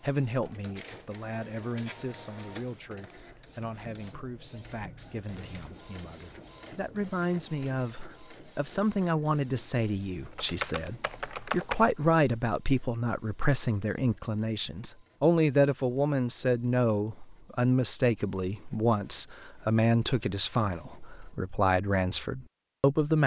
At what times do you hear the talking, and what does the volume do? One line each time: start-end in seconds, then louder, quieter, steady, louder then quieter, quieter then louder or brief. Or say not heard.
0.0-23.2 louder.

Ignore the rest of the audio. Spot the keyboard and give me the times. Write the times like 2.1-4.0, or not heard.
10.3-11.9.